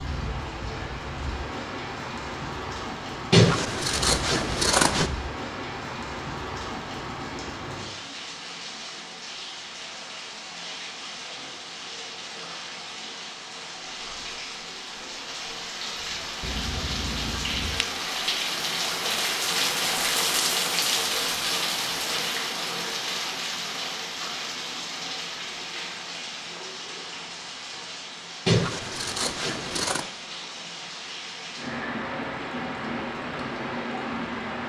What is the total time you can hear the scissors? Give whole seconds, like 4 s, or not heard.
5 s.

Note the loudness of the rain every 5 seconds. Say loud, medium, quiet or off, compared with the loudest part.
medium, medium, medium, loud, loud, medium, medium.